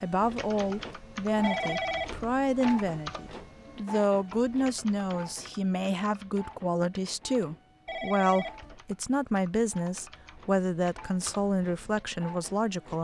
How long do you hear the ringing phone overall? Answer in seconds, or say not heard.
2 s.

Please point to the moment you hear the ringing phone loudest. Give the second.
2 s.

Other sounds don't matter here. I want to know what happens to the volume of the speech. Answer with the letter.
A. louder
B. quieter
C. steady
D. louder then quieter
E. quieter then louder
C.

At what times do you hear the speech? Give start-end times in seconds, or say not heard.
0.0-12.9.